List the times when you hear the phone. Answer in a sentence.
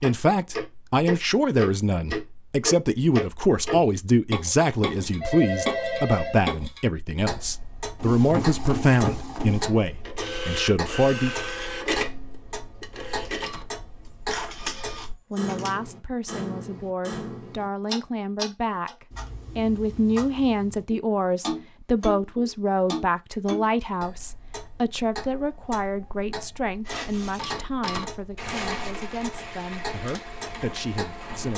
The phone can be heard from 4.8 to 6.5 s.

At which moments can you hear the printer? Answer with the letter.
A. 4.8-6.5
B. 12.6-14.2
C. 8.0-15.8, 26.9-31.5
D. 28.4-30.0
C.